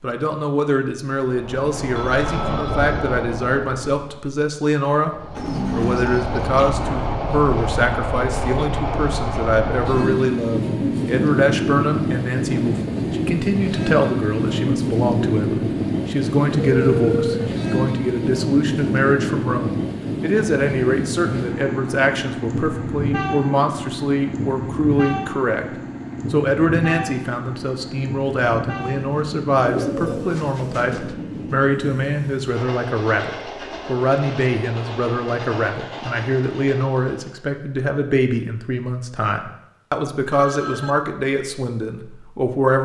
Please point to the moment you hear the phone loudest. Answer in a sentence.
The volume of the phone peaks at 17 seconds.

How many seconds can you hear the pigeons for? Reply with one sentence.
You can hear the pigeons for 3 seconds altogether.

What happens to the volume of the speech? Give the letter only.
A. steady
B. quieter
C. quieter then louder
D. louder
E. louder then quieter
A.